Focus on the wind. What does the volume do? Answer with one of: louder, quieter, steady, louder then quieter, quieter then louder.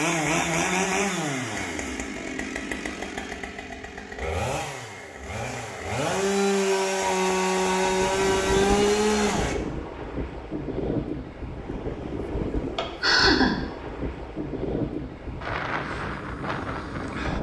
steady.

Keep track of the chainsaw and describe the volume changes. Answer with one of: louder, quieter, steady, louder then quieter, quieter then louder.
quieter then louder.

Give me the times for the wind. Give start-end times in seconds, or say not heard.
7.7-17.3.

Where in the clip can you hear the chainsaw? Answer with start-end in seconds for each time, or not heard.
0.0-9.6.